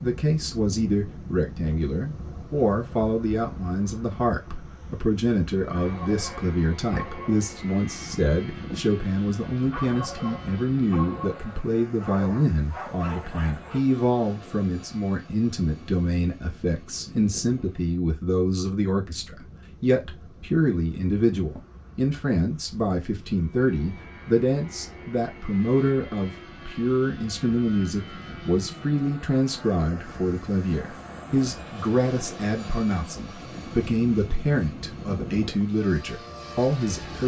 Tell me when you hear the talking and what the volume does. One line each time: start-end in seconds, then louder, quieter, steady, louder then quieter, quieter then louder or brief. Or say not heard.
0.0-37.2 steady.